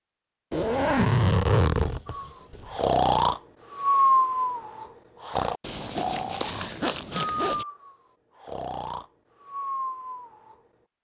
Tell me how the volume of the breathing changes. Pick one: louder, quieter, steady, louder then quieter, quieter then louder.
quieter.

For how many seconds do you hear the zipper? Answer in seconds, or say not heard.
4 s.